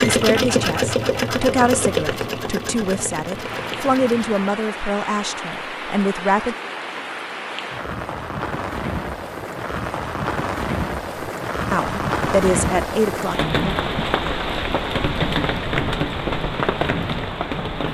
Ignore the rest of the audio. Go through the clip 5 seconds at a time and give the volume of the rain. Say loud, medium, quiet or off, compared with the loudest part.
medium, medium, loud, loud.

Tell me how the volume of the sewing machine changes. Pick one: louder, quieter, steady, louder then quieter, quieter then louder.
quieter.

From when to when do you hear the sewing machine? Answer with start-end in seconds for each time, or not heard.
0.0-4.5.